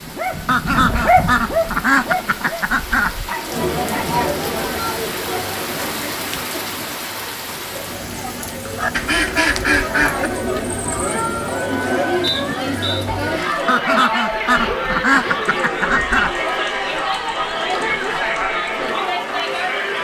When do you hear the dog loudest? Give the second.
1 s.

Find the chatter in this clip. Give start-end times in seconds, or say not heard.
3.4-19.9.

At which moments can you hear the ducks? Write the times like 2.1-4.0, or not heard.
0.5-3.4, 8.8-10.3, 13.7-16.4.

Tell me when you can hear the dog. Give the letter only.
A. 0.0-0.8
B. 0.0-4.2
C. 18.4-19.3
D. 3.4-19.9
B.